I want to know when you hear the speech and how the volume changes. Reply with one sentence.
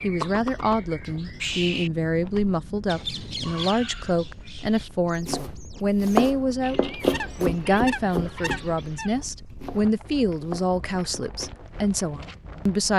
The speech can be heard from 0.0 to 12.9 s, at a steady volume.